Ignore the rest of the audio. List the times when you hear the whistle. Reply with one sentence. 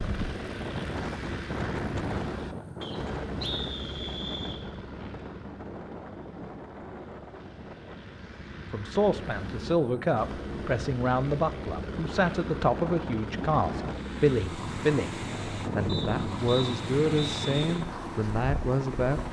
The whistle can be heard from 2.8 to 4.6 s and from 15.8 to 17.5 s.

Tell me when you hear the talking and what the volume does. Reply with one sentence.
The talking can be heard from 8.7 to 19.2 s, at a steady volume.